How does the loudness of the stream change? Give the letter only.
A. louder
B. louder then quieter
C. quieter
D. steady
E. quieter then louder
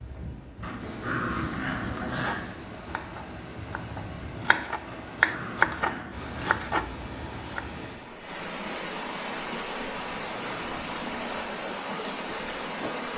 A.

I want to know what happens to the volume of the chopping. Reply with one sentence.
The loudness of the chopping goes up, then down.